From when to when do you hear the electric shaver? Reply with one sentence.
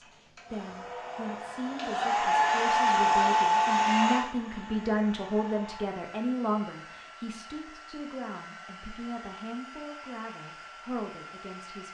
The electric shaver can't be heard in this clip.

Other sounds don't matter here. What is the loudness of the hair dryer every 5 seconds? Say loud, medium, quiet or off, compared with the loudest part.
loud, quiet, quiet.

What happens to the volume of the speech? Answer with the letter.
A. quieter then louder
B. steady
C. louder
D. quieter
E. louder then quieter
E.